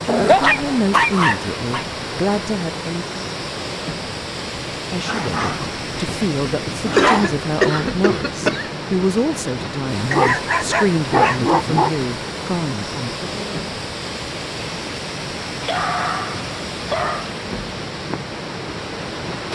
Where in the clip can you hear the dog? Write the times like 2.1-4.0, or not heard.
0.1-1.9, 5.0-7.5, 10.1-11.9, 15.6-17.3.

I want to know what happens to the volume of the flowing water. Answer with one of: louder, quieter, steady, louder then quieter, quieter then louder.
steady.